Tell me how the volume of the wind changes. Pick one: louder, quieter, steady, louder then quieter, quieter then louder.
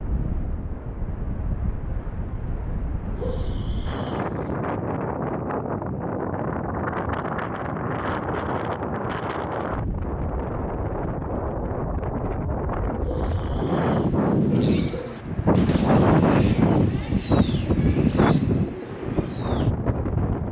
louder.